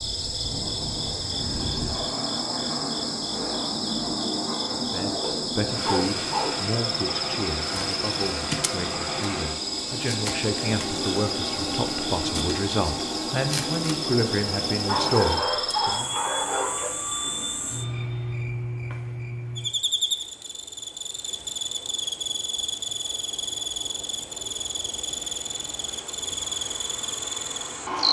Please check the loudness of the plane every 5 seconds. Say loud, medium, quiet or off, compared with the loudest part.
loud, loud, loud, loud, off, off.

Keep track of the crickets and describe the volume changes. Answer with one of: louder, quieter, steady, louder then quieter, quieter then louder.
steady.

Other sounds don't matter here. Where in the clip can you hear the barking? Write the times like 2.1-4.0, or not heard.
5.2-6.7, 14.8-16.9.